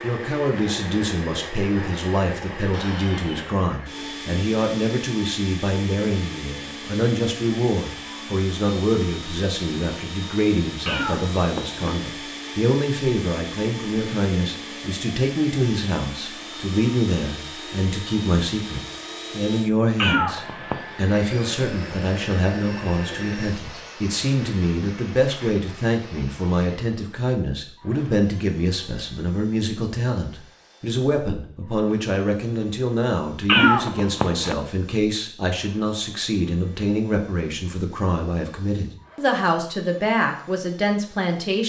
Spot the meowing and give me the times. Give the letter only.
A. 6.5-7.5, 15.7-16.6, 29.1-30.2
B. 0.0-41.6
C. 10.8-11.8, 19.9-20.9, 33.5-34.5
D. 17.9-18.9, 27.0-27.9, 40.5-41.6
C.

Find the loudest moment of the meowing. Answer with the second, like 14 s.
34 s.